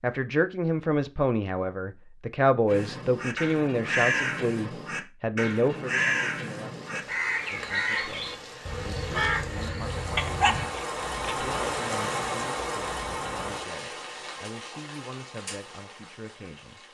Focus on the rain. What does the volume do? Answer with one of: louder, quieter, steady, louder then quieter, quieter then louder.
louder then quieter.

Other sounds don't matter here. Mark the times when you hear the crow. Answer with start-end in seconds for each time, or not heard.
2.6-10.7.